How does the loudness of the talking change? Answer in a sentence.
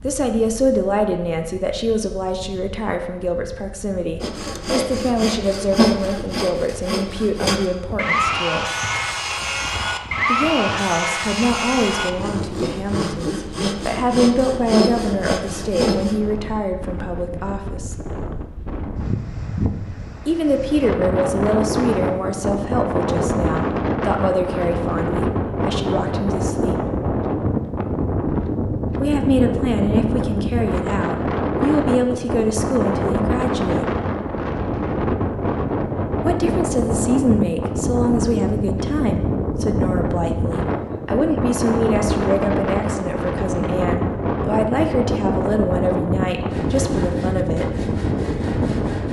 The loudness of the talking stays about the same.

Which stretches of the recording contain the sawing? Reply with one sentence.
The sawing can be heard from 4.2 to 16.2 s and from 46.5 to 49.0 s.